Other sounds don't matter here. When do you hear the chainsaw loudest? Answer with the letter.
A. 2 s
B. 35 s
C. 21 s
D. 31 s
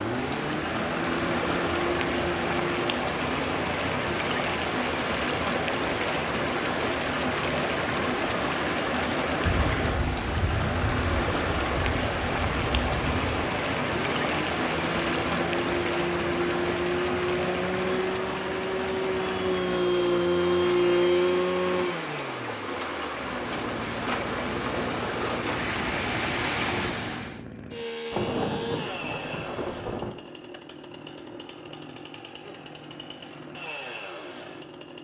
C.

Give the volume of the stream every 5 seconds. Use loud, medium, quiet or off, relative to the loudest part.
loud, loud, loud, loud, medium, loud, off.